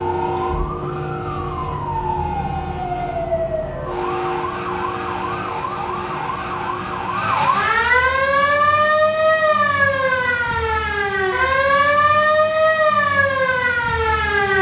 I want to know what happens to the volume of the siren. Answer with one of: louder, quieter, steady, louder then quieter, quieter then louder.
louder.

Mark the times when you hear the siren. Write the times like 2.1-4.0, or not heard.
0.0-14.5.